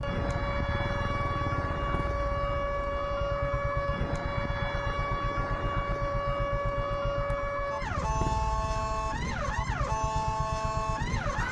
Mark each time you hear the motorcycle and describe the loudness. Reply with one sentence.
You can hear the motorcycle from 0.0 to 11.4 s, at a steady volume.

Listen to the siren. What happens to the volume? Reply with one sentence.
The volume of the siren stays about the same.